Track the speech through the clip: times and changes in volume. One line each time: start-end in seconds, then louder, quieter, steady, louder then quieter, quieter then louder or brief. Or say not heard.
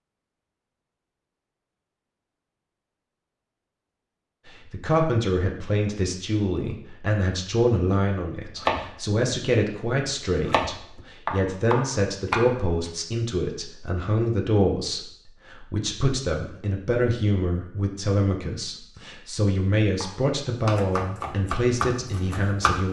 4.5-22.8 steady.